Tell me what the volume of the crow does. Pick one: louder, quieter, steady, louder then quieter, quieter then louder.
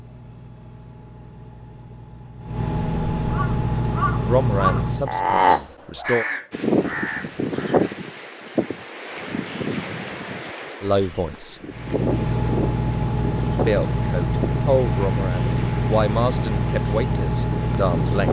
louder then quieter.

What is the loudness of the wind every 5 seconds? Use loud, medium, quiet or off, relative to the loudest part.
off, loud, medium, medium.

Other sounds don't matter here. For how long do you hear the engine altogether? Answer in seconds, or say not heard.
12 s.